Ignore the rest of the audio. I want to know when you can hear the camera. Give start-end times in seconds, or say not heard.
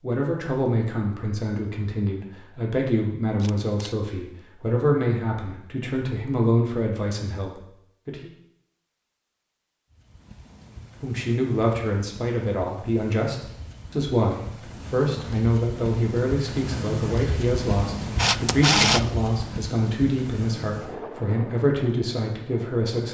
3.4-4.0, 18.1-19.4.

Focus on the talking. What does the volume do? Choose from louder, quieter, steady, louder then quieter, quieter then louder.
steady.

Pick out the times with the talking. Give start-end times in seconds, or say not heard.
0.0-8.3, 11.0-23.0.